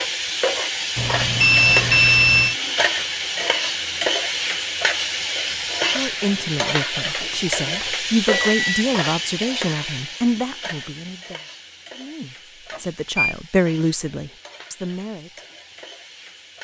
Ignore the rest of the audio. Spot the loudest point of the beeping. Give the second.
2 s.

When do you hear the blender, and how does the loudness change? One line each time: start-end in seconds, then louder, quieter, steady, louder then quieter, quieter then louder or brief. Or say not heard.
not heard.